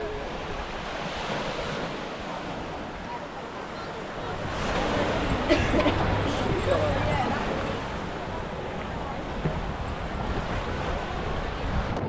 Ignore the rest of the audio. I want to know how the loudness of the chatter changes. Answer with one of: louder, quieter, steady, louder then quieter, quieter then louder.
louder then quieter.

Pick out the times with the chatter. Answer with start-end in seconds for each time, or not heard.
0.0-12.0.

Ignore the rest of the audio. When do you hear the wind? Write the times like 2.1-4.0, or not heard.
0.0-12.0.